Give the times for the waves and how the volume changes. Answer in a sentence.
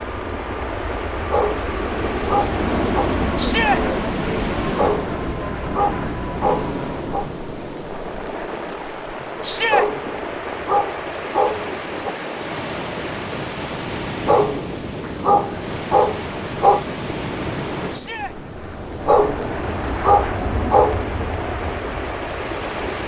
The waves can be heard from 0.0 to 23.0 s, at a steady volume.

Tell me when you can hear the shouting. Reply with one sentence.
You can hear the shouting from 3.4 to 3.8 s, from 9.4 to 9.8 s and from 17.9 to 18.4 s.